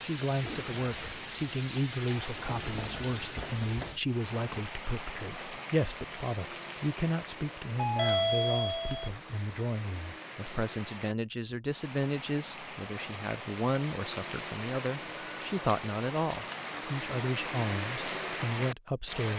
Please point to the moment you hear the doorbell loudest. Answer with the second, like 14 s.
8 s.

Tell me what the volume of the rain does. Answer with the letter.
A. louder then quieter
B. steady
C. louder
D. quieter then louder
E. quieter
D.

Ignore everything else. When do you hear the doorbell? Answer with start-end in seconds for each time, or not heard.
2.8-3.2, 7.8-9.1, 14.9-15.6.